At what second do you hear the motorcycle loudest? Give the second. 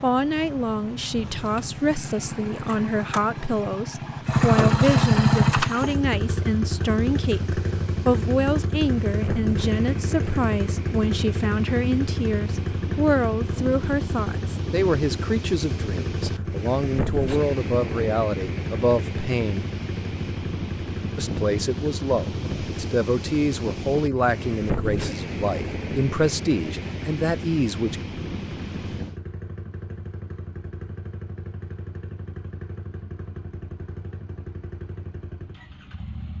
5 s.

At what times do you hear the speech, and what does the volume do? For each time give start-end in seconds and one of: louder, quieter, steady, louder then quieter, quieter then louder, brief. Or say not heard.
0.0-19.6 steady
21.1-28.0 steady.